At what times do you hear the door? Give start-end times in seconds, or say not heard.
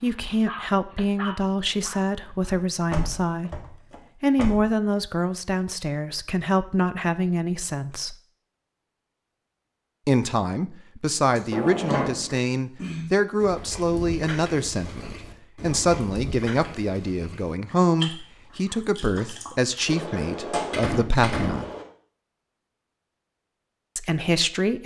2.9-4.6, 11.5-12.4, 19.9-21.9.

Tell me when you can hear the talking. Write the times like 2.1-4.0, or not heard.
0.0-8.2, 10.1-21.7, 23.9-24.8.